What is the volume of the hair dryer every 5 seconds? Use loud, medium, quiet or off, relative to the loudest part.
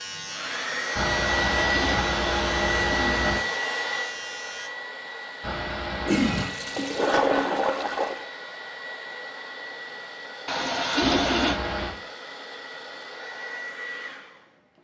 loud, medium, medium.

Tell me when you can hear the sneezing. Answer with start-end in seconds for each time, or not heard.
0.9-3.5, 5.4-6.5, 11.0-11.9.